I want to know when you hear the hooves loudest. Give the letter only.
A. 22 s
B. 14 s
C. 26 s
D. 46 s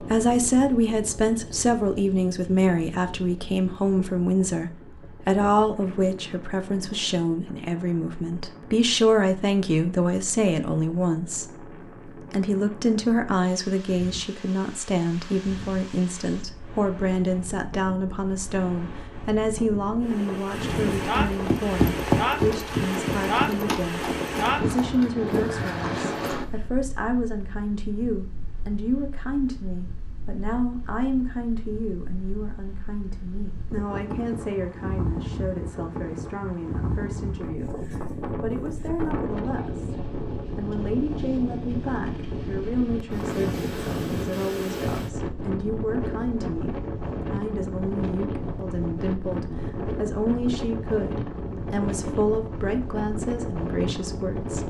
A.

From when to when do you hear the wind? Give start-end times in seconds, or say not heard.
0.0-54.6.